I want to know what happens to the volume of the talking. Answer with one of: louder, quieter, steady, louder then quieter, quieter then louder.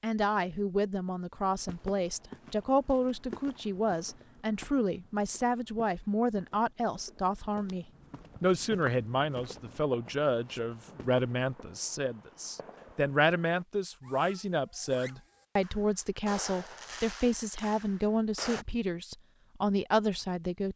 steady.